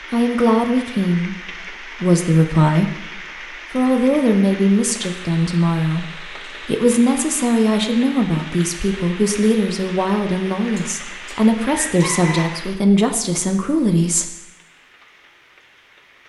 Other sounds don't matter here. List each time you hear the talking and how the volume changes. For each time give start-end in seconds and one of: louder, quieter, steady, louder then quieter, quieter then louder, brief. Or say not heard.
0.1-14.3 steady.